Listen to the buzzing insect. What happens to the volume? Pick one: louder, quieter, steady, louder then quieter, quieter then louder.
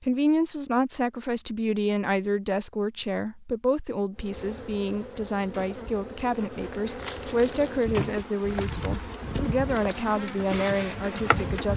louder.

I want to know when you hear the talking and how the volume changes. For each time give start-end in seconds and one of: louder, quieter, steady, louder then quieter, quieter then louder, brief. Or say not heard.
0.0-11.7 steady.